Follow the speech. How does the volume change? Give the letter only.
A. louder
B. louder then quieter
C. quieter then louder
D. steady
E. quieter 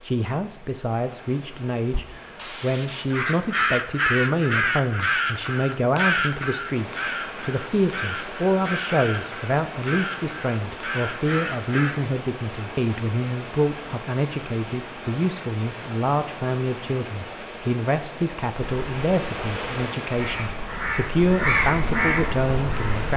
D.